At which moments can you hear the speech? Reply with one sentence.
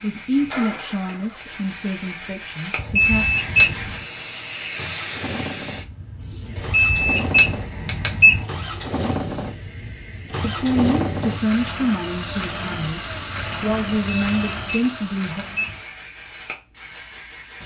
The speech can be heard from 0.0 to 3.2 s and from 10.4 to 15.4 s.